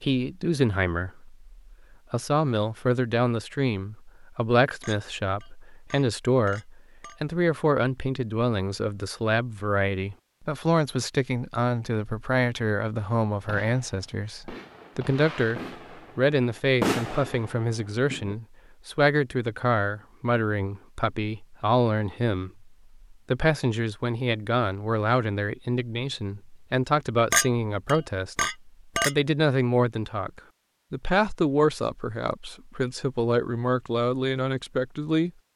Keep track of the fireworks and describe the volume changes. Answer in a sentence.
The volume of the fireworks goes up, then down.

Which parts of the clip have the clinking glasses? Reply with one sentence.
You can hear the clinking glasses from 4.8 to 7.2 s and from 27.3 to 29.1 s.